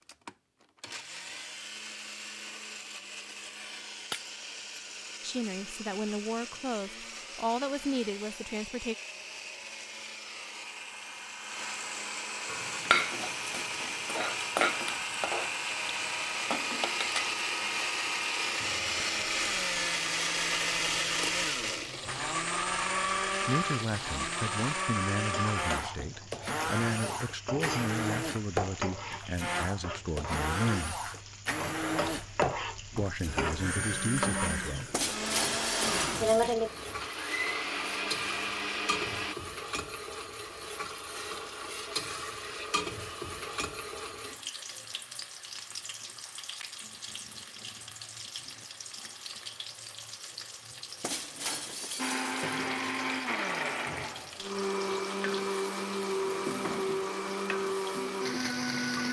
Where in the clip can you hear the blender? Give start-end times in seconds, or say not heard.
0.0-39.4, 52.0-59.0.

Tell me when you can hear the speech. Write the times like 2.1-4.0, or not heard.
5.2-8.9, 23.4-31.0, 33.0-34.9.